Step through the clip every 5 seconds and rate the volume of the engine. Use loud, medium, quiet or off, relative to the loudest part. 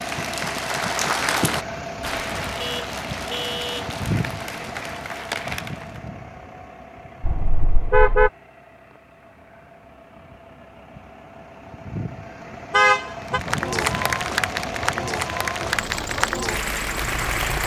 loud, medium, loud, loud.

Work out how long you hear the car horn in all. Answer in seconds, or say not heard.
3 s.